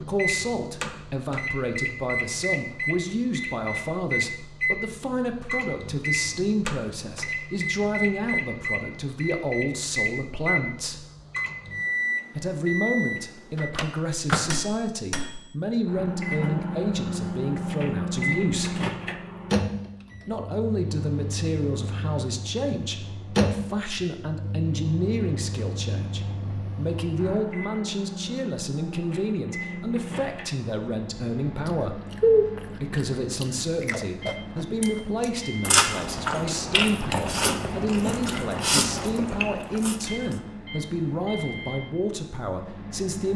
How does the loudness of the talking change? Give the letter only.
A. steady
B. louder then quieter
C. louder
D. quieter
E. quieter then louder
A.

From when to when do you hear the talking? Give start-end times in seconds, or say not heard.
0.0-11.1, 12.3-18.8, 20.2-32.0, 32.7-43.3.